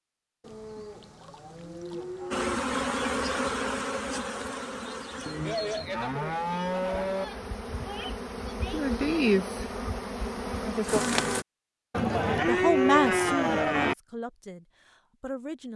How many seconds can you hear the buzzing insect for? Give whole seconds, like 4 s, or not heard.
9 s.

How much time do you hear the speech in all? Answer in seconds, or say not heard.
3 s.